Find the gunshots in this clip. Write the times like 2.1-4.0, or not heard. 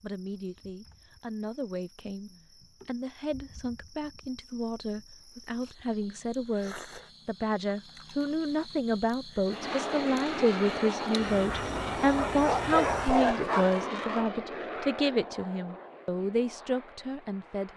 not heard.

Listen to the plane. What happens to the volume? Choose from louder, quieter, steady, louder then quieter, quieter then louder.
quieter.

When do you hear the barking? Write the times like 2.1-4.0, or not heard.
12.3-13.8.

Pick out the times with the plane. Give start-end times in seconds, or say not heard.
9.4-17.7.